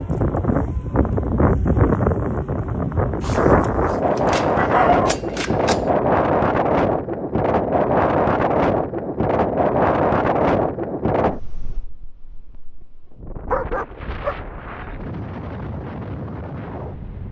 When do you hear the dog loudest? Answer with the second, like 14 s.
5 s.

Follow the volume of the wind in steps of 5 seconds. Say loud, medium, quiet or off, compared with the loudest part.
loud, loud, medium, quiet.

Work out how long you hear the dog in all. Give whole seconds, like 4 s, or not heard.
3 s.